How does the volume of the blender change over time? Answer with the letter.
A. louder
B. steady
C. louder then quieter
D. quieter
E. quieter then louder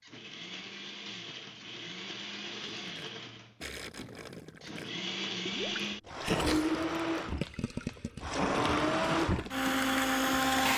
A.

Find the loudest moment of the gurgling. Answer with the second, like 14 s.
6 s.